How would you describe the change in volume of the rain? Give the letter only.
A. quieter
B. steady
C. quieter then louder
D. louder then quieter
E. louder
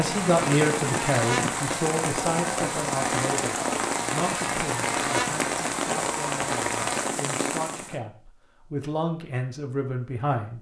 B.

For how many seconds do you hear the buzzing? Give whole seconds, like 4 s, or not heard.
7 s.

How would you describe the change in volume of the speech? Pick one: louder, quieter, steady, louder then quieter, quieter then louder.
quieter then louder.